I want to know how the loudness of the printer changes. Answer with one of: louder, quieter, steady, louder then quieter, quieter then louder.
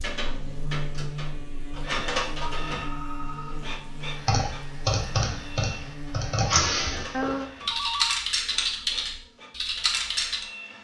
quieter.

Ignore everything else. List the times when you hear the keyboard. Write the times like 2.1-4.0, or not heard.
4.1-10.4.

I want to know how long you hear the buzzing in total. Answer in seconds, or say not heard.
7 s.